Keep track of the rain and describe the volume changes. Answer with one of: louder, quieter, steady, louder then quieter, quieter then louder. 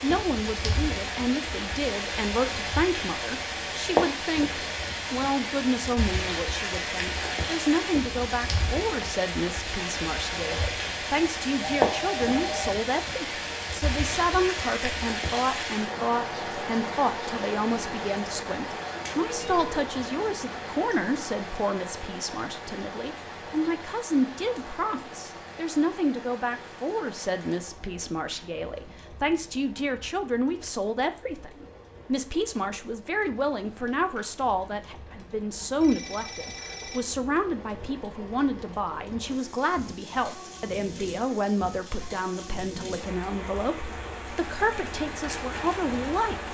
quieter then louder.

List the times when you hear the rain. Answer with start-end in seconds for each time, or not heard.
0.0-46.4.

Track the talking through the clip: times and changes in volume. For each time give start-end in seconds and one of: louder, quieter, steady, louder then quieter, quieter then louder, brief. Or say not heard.
0.0-46.4 steady.